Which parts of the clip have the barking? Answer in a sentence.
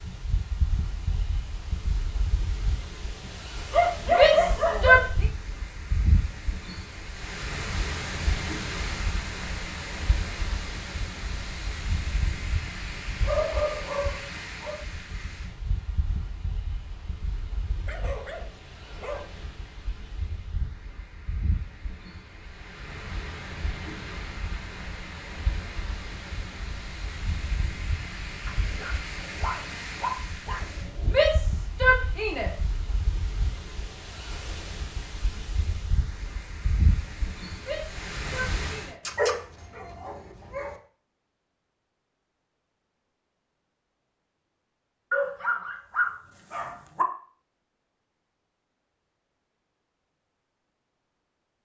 The barking can be heard from 3.2 to 5.0 s, from 13.2 to 14.8 s, from 17.8 to 19.2 s, from 28.4 to 31.2 s, from 39.0 to 40.8 s and from 45.1 to 47.0 s.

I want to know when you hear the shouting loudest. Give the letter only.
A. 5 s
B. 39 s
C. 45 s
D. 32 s
A.